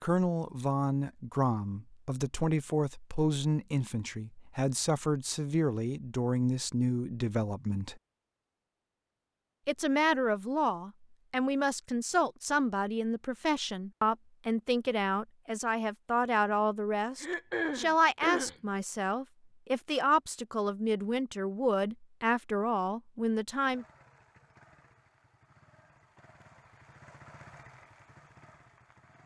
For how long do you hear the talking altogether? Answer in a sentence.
The talking can be heard for 22 seconds in total.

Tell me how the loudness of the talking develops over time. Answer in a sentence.
The loudness of the talking stays about the same.